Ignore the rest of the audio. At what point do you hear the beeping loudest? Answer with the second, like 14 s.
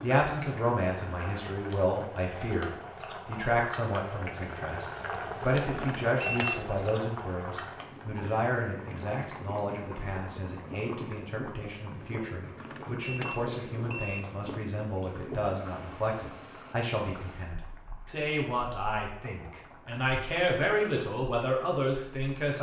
6 s.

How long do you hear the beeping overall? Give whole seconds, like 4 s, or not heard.
3 s.